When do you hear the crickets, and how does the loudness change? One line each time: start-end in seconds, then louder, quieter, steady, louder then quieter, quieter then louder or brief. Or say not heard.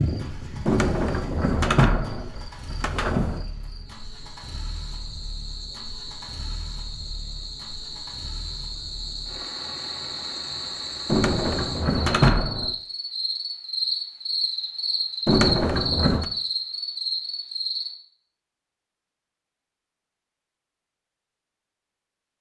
0.0-17.9 louder.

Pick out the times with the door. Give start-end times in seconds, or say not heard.
0.7-3.5, 11.1-12.8, 15.2-16.2.